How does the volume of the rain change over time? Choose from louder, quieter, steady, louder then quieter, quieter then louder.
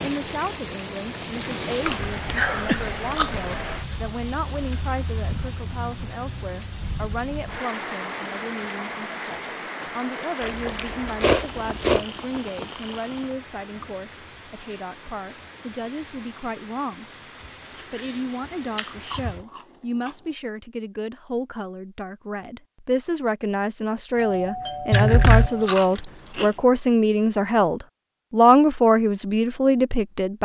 quieter.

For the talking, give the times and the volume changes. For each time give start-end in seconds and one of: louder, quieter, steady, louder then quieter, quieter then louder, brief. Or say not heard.
0.0-17.1 steady
17.9-30.3 louder.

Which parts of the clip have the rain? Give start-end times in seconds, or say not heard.
0.0-19.4.